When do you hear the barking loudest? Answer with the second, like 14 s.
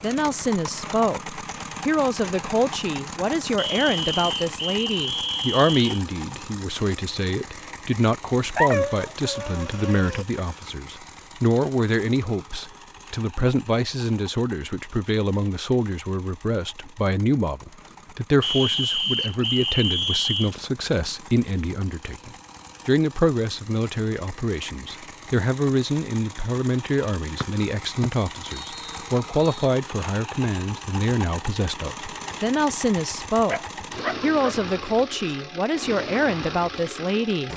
9 s.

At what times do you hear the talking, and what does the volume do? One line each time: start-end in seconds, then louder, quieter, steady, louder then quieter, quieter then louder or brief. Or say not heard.
0.0-37.5 steady.